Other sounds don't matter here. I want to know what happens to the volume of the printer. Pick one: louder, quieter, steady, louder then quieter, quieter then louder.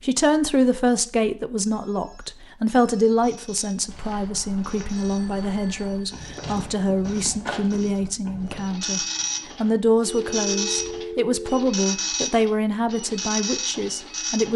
louder.